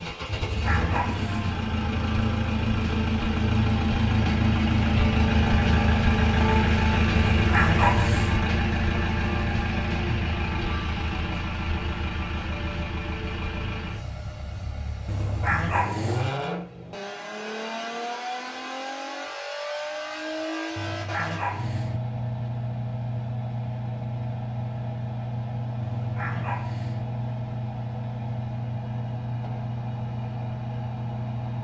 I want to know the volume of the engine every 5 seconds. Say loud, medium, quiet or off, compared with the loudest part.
loud, loud, medium, medium, medium, medium, medium.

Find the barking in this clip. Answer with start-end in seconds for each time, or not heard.
0.2-1.5, 7.2-8.4, 15.1-16.3, 20.8-22.0, 25.8-27.1.